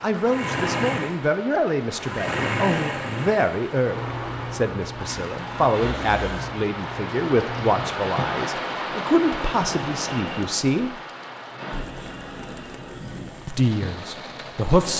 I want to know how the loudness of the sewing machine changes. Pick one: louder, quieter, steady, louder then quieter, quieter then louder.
quieter.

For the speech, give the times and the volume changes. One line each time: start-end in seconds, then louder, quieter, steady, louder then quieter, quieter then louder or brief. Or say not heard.
0.0-11.0 steady
13.4-14.9 brief.